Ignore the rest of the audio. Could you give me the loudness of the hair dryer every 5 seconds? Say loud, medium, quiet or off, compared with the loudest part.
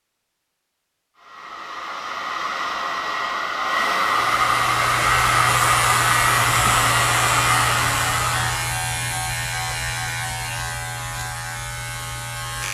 loud, loud, off.